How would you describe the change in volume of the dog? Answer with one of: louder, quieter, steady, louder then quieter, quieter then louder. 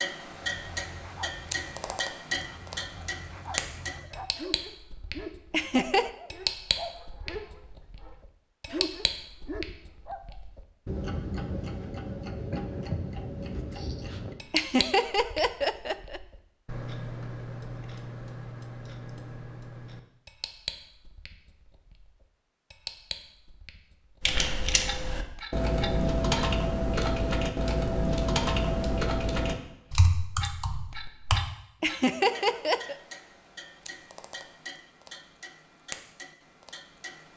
louder.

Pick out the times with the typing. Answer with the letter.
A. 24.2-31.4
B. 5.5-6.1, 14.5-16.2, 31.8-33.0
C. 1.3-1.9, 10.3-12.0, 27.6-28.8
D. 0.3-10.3
A.